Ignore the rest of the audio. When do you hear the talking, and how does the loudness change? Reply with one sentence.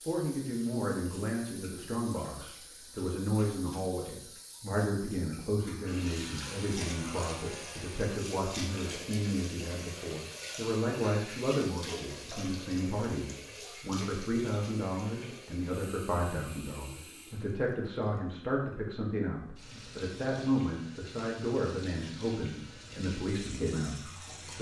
You can hear the talking from 0.1 to 24.5 s, at a steady volume.